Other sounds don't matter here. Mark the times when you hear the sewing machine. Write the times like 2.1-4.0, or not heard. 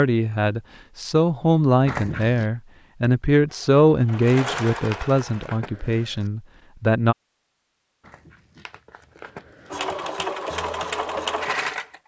3.5-5.5, 9.7-12.0.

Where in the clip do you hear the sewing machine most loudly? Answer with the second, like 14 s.
11 s.